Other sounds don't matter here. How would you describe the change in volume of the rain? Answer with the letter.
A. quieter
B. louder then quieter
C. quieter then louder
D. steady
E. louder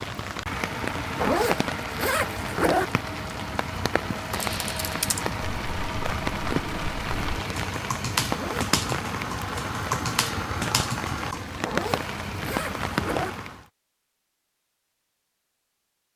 D.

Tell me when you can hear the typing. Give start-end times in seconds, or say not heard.
4.2-11.4.